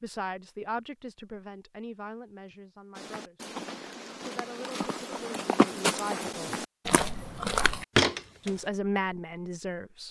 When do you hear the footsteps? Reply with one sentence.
The footsteps can be heard from 3.0 to 8.5 s.